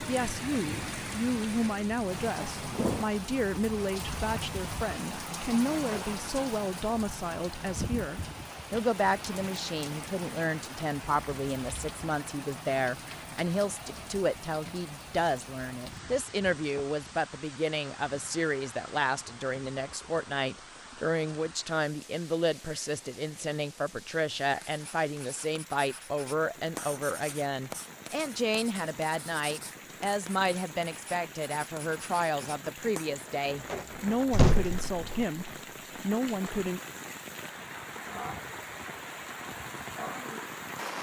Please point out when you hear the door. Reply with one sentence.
You can hear the door from 5.7 to 6.2 s and from 33.5 to 35.2 s.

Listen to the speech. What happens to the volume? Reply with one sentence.
The loudness of the speech stays about the same.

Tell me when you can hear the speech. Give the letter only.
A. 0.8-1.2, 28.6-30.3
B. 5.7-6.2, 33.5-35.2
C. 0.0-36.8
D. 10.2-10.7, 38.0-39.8
C.